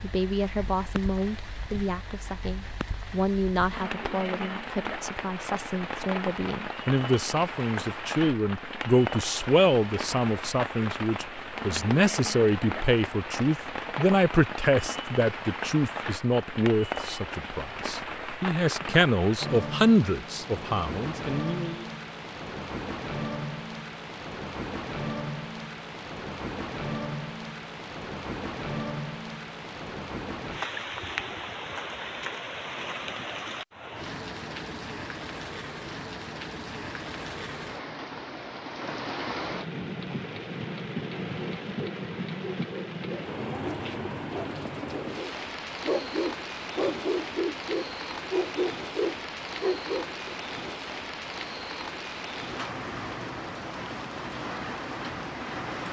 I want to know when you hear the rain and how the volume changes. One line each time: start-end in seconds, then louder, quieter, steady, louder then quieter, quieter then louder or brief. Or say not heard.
0.0-55.8 steady.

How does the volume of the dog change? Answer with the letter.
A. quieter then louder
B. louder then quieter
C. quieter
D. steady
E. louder
E.